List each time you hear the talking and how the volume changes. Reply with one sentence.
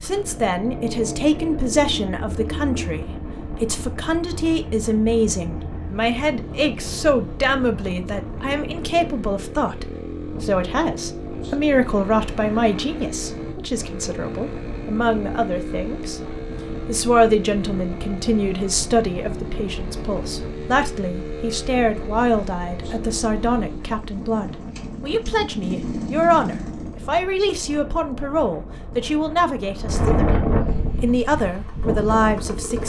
The talking can be heard from 0.0 to 30.3 s, at a steady volume; and briefly from 31.0 to 32.8 s.